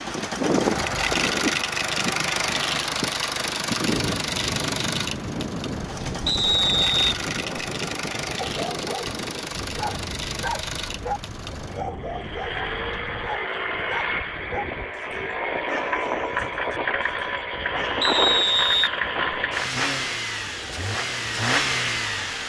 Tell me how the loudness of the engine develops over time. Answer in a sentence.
The volume of the engine goes down, then up.